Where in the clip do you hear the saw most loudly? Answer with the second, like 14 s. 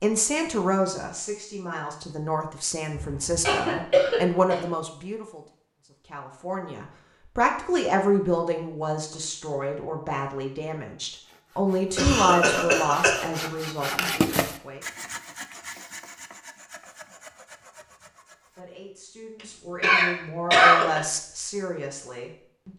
14 s.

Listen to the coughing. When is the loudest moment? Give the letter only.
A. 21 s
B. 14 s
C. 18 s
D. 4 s
A.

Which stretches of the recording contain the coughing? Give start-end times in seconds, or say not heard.
3.0-4.6, 11.9-13.4, 19.8-21.0.